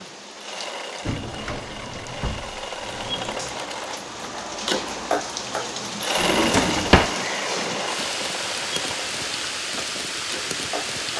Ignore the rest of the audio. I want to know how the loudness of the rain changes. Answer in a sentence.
The volume of the rain goes up.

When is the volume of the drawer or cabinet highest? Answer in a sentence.
The loudest moment of the drawer or cabinet is at 7 seconds.